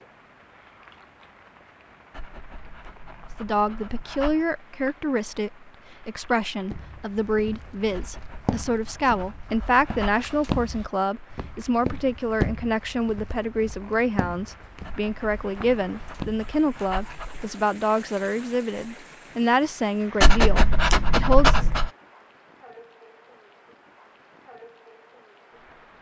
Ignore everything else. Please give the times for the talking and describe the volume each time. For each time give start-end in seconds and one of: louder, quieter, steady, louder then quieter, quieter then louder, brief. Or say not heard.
3.4-21.6 steady.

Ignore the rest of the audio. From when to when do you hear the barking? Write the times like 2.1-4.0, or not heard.
2.1-4.5, 7.9-10.3, 14.8-17.4, 20.2-21.9.